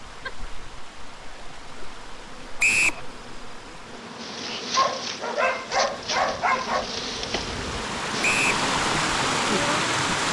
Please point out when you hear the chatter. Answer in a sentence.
You can't hear the chatter here.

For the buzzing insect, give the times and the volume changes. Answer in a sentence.
You can hear the buzzing insect from 0.0 to 10.0 s, getting louder.